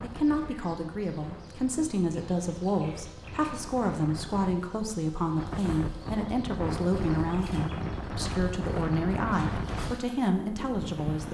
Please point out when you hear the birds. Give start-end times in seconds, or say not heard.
not heard.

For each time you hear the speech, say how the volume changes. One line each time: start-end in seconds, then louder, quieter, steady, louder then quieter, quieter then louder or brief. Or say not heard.
0.0-11.2 steady.